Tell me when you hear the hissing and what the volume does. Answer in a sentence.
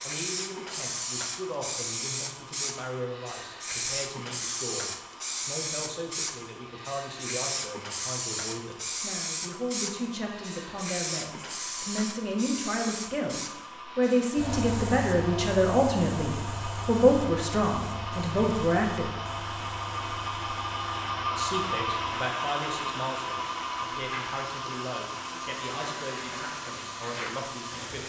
The hissing can be heard from 0.0 to 28.0 s, getting quieter.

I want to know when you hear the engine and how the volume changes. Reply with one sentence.
You can hear the engine from 0.0 to 28.0 s, getting louder.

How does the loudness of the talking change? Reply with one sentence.
The volume of the talking goes up, then down.